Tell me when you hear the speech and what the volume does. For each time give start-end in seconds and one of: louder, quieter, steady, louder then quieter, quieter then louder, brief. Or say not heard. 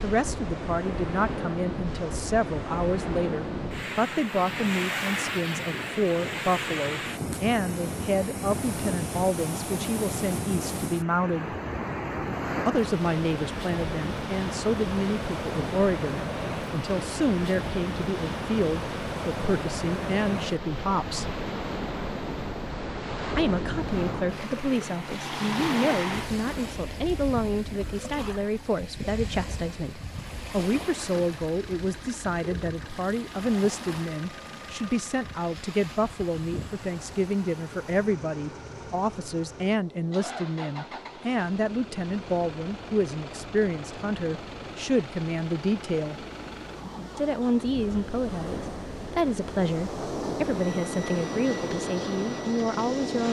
0.0-11.6 steady
12.7-21.3 steady
23.4-46.2 steady
47.1-53.2 steady.